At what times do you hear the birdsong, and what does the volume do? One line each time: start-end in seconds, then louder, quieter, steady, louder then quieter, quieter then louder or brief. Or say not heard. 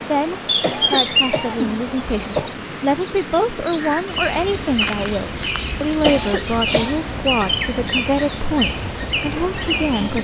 0.0-10.1 quieter then louder.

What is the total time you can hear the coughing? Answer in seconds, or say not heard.
3 s.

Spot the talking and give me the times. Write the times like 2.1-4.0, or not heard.
0.0-10.1.